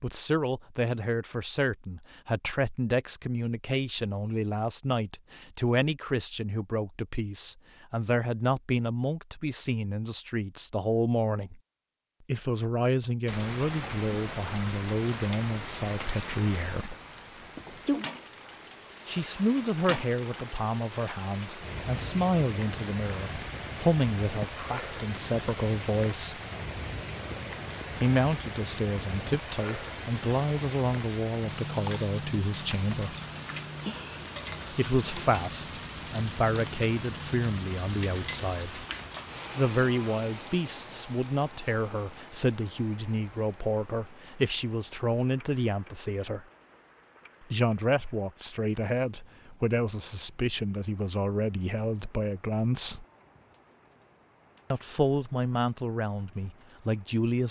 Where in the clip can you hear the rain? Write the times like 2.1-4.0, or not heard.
13.2-57.4.